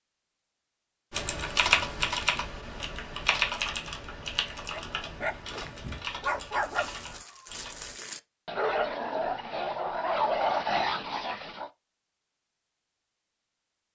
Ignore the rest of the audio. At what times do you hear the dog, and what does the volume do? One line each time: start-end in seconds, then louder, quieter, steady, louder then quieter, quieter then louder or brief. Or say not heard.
4.7-11.7 louder.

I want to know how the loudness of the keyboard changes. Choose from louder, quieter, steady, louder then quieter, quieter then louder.
quieter.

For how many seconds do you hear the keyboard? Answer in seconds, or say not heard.
7 s.